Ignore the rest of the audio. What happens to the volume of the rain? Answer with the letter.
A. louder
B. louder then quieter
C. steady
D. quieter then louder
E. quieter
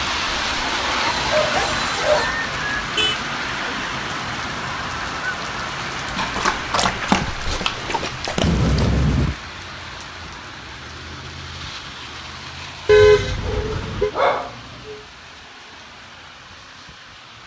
E.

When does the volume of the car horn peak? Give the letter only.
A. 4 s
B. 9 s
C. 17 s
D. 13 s
D.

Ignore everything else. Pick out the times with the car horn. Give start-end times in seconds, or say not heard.
3.0-3.8, 8.4-9.3, 12.8-14.1.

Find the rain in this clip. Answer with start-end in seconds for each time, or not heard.
0.0-17.4.